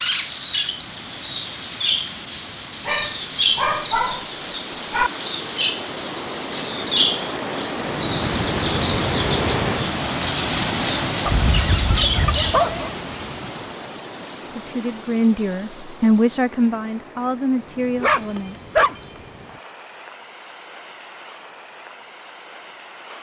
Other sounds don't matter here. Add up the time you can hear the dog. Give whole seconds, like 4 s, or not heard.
5 s.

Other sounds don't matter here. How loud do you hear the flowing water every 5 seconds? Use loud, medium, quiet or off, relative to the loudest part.
quiet, loud, loud, quiet, quiet.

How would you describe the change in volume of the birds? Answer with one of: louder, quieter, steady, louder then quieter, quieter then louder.
steady.